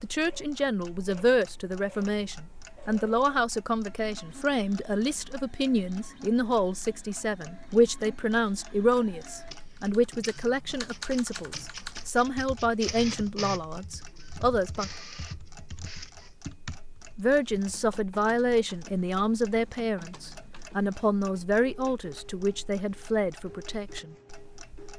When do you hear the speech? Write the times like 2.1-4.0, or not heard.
0.0-14.9, 17.1-24.1.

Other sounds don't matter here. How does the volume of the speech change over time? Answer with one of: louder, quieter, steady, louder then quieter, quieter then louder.
steady.